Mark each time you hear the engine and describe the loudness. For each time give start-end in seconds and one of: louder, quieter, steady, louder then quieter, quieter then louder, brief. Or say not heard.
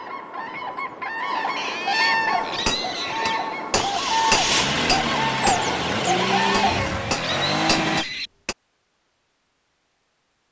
3.8-8.1 steady.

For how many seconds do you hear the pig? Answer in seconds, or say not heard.
4 s.